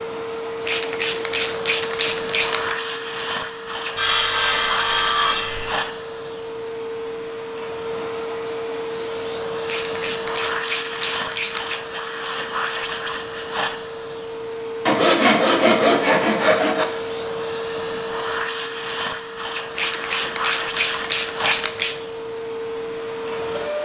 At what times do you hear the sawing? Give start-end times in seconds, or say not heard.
4.0-5.7, 14.8-16.9.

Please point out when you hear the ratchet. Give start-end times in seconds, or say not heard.
0.7-2.8, 9.7-11.8, 19.8-21.9.